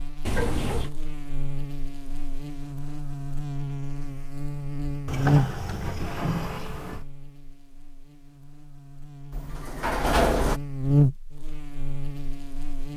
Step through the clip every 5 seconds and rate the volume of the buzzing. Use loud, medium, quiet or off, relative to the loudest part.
medium, loud, loud.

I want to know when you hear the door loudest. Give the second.
10 s.